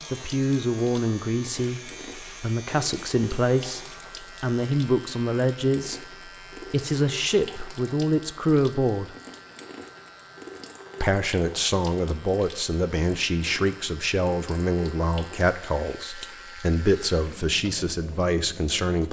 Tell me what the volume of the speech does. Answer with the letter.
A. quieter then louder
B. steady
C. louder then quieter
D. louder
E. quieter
B.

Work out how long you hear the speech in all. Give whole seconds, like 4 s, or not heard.
17 s.